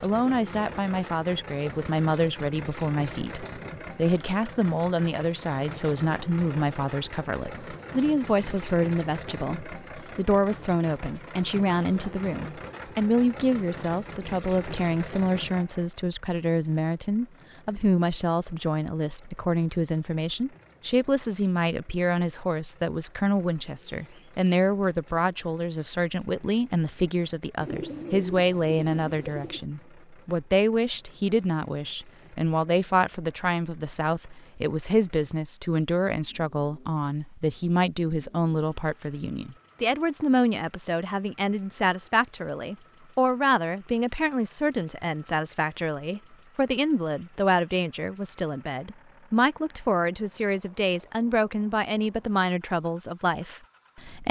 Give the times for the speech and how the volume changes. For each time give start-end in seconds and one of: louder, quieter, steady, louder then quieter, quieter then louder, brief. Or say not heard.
0.0-54.2 steady.